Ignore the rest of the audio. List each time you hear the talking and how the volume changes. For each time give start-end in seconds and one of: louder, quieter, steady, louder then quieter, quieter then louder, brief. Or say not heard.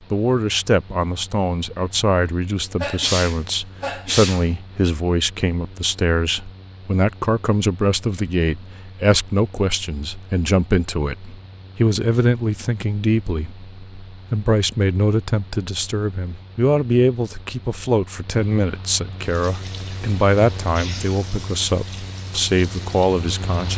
0.1-23.7 steady.